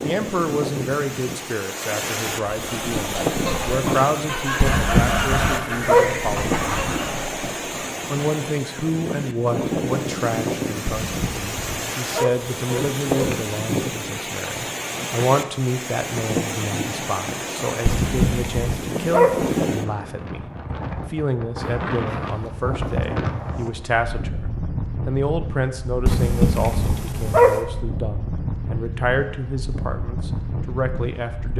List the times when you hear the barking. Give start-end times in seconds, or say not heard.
4.6-6.0, 10.8-13.4, 17.9-19.6, 26.1-27.6.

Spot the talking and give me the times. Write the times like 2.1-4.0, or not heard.
0.0-6.5, 8.1-20.4, 21.1-31.5.